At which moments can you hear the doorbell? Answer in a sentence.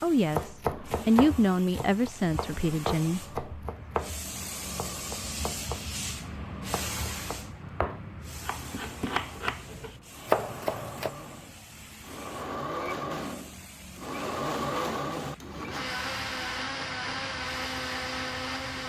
You can't hear the doorbell here.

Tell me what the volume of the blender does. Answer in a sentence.
The volume of the blender goes up.